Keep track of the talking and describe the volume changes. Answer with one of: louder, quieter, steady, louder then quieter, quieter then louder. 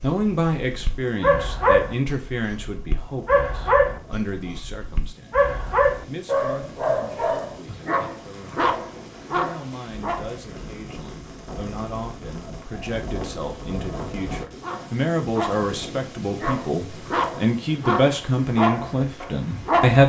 quieter then louder.